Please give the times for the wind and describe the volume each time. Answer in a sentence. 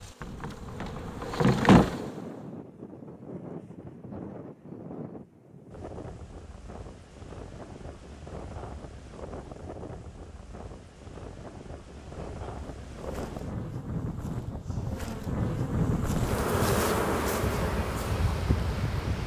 You can hear the wind from 0.0 to 19.2 s, getting louder.